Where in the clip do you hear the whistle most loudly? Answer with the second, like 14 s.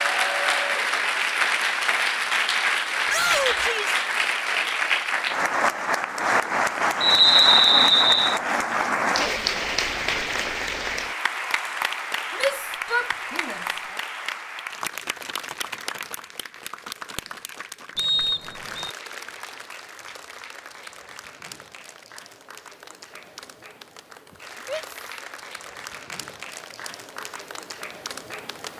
7 s.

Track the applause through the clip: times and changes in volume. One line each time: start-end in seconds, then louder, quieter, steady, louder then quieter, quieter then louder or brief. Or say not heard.
0.0-28.7 quieter.